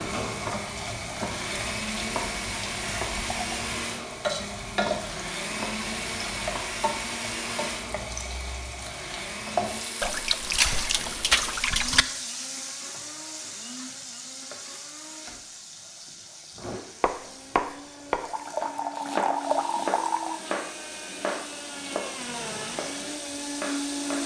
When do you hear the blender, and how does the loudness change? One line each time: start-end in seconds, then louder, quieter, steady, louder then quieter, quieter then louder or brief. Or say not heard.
0.0-24.2 quieter then louder.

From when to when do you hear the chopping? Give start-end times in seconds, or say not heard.
0.2-6.7, 16.6-24.2.